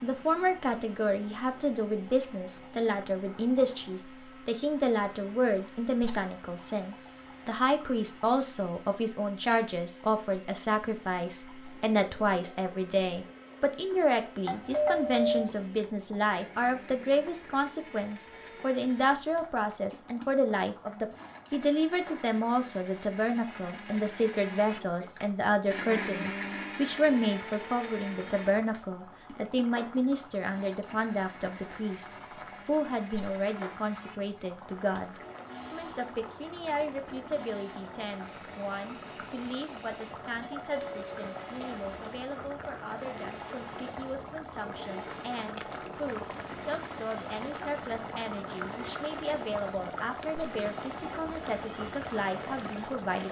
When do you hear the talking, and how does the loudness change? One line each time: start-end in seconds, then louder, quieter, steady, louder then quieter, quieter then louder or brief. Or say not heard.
0.0-53.2 quieter.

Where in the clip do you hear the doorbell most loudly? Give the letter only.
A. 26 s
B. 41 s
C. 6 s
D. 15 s
D.